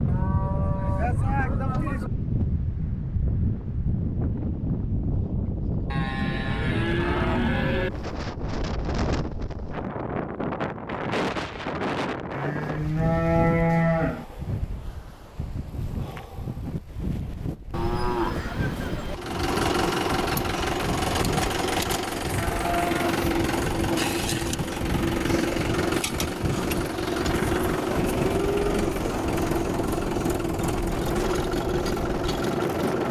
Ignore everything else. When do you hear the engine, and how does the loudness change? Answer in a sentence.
You can hear the engine from 19.1 to 33.0 s, at a steady volume.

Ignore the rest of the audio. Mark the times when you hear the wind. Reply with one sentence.
The wind can be heard from 0.0 to 33.0 s.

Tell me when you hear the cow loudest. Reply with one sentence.
The volume of the cow peaks at 14 seconds.